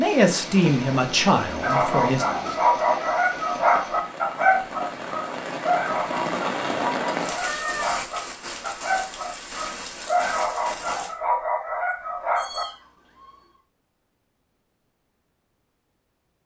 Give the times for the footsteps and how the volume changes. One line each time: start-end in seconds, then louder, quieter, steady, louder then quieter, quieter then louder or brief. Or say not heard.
not heard.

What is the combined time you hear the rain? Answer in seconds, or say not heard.
11 s.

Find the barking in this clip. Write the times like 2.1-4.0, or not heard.
1.6-12.7.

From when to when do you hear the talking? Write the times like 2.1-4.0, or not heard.
0.0-2.2.